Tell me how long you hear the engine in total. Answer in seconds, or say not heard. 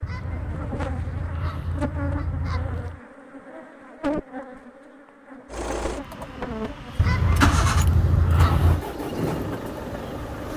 5 s.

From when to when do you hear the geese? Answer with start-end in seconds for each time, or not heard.
0.0-3.0, 7.0-8.8.